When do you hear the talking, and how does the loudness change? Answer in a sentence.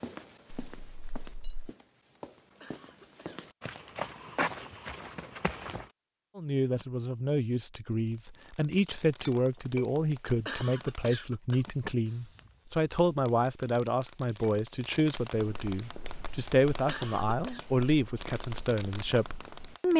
The talking can be heard from 6.3 to 19.9 s, at a steady volume.